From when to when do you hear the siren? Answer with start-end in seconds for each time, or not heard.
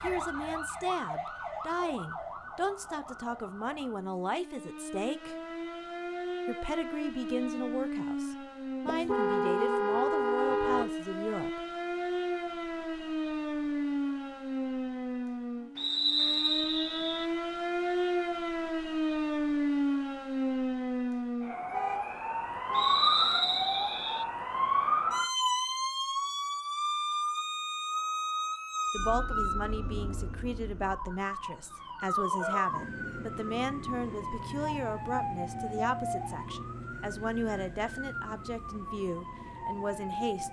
0.0-40.4.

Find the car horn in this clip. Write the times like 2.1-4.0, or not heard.
8.8-10.8, 21.7-23.1.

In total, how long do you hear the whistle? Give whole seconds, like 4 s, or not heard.
3 s.